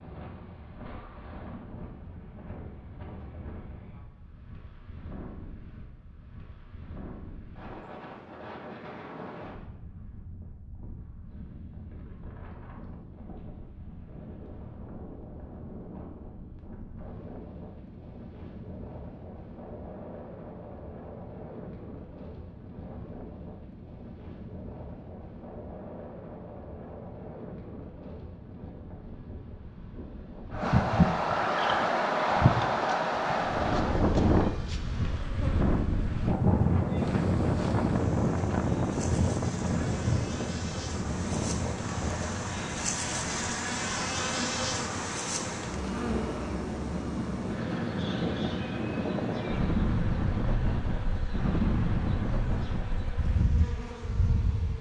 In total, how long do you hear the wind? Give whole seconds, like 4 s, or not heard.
55 s.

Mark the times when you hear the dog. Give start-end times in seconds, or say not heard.
not heard.